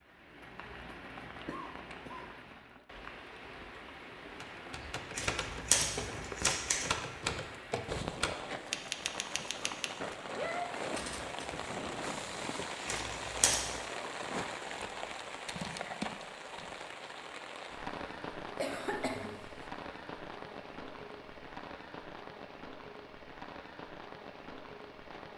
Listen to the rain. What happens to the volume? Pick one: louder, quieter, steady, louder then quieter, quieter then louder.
louder then quieter.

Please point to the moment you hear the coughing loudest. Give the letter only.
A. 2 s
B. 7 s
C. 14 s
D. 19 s
D.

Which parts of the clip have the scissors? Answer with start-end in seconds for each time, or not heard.
5.2-6.8, 12.8-13.7.